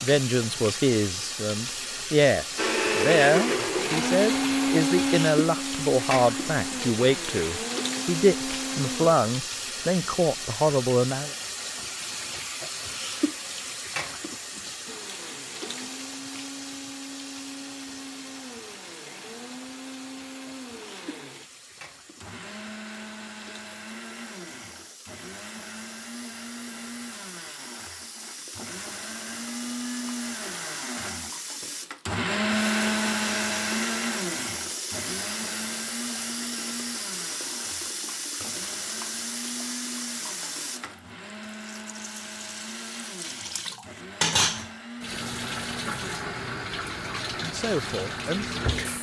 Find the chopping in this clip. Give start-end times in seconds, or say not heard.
not heard.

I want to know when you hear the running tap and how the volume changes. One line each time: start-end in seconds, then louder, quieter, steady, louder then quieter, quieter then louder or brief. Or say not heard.
0.0-48.9 quieter then louder.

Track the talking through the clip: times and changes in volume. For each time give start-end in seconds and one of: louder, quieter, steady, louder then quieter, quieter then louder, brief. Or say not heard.
0.0-11.3 steady
47.4-48.9 brief.